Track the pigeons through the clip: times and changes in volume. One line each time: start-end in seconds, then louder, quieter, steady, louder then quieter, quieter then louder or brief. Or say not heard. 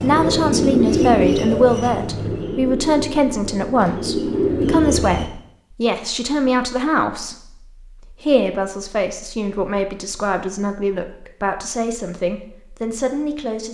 0.0-5.3 quieter then louder.